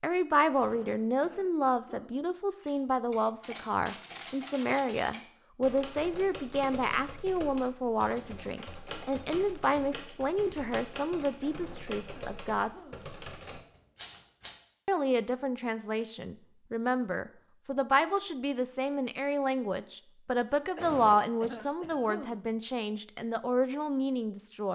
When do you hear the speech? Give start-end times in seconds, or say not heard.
0.0-12.7, 14.8-24.7.